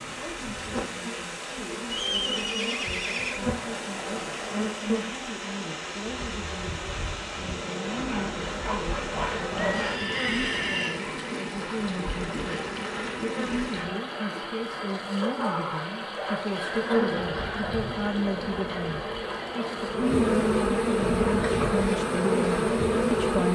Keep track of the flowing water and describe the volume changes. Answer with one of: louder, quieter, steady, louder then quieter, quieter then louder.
steady.